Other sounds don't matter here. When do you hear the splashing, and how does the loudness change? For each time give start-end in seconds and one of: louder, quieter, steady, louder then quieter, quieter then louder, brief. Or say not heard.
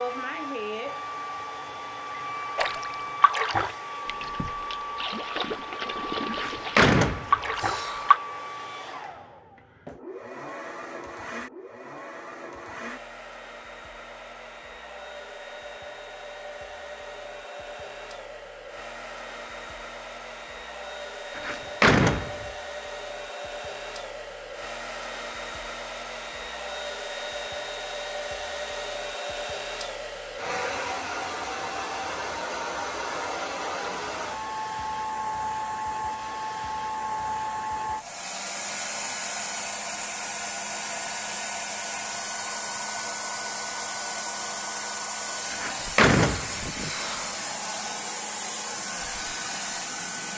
2.5-8.2 quieter then louder.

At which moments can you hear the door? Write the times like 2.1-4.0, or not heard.
6.3-8.1, 21.4-22.4, 45.5-47.4.